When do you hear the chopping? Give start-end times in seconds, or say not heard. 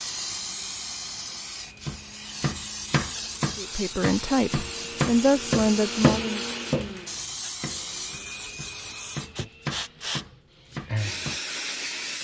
1.8-7.0, 7.6-11.4.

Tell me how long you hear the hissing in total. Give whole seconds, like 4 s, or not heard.
12 s.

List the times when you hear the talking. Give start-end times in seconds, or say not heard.
3.5-6.4.